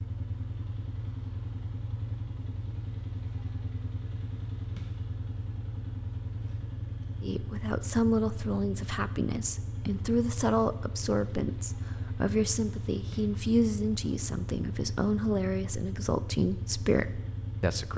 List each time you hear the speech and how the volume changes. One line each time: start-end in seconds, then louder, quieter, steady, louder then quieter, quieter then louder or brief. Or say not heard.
7.2-17.9 steady.